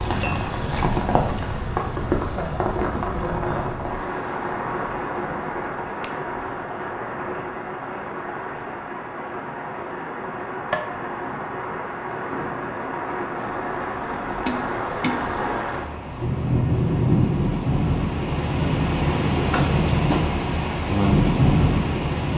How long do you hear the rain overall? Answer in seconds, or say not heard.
22 s.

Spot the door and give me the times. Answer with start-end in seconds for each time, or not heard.
not heard.